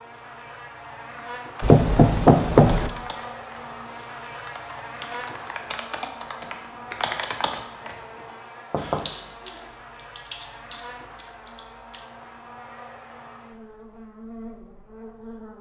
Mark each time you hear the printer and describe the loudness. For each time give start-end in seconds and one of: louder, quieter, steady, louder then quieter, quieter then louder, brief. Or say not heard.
not heard.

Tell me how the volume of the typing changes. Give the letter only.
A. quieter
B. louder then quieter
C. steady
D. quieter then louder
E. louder
B.